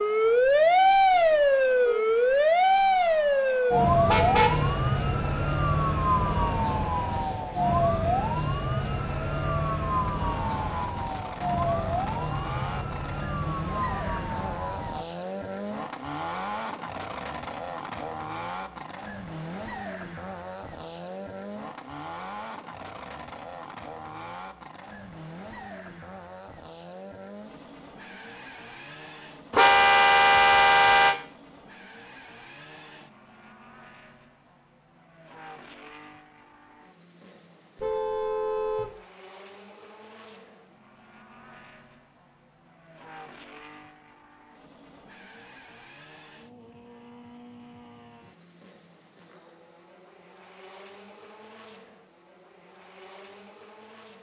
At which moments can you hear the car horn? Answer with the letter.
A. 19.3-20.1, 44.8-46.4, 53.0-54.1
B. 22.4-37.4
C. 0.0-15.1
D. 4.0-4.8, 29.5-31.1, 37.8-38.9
D.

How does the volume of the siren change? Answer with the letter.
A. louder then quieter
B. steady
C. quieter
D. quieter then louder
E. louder
C.